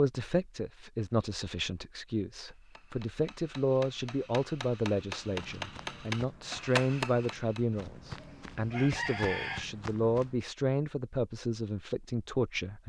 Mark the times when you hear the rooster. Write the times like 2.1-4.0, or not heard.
8.2-9.7.